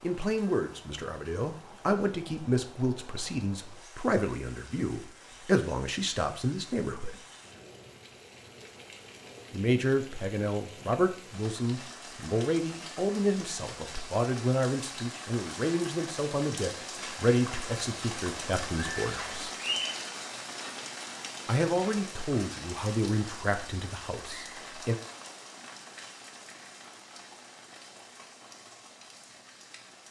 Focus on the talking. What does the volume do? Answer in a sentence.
The volume of the talking stays about the same.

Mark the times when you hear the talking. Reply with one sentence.
The talking can be heard from 0.0 to 7.2 s, from 9.5 to 19.5 s and from 21.4 to 24.9 s.